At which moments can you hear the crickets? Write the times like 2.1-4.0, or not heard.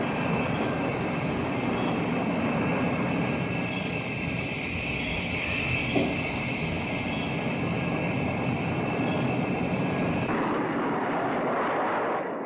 0.0-10.3.